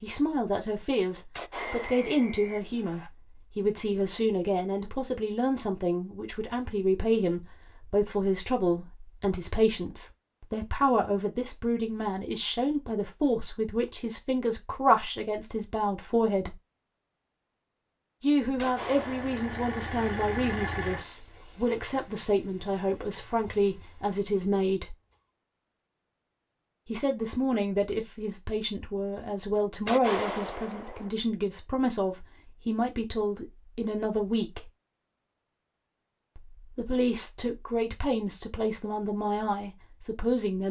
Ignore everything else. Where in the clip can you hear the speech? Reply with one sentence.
You can hear the speech from 0.0 to 16.6 s, from 18.2 to 24.9 s, from 26.9 to 34.7 s and from 36.4 to 40.6 s.